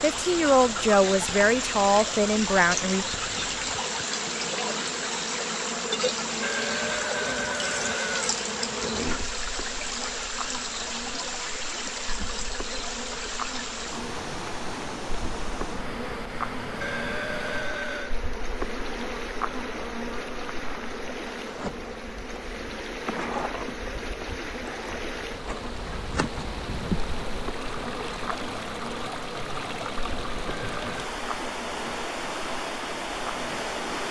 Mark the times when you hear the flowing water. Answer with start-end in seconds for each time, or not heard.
0.0-34.0.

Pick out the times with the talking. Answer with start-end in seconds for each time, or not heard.
0.0-3.0.